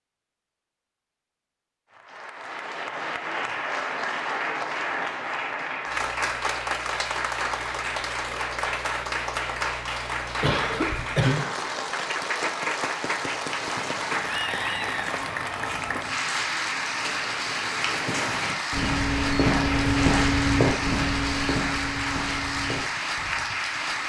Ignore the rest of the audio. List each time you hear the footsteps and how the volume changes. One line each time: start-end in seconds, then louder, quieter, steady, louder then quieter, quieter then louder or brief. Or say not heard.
13.2-23.6 louder then quieter.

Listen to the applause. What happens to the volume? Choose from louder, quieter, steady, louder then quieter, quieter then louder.
steady.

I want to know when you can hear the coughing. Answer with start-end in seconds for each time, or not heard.
10.4-11.6.